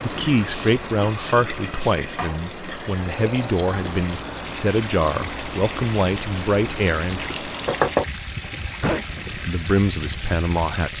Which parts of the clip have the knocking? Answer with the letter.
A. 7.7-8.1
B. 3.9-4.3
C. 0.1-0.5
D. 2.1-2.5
A.